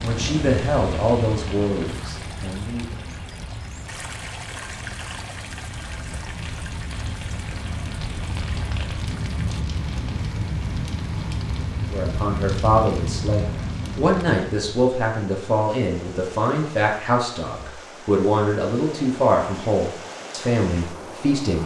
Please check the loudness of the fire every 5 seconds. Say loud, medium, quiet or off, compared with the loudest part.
medium, loud, loud, off, off.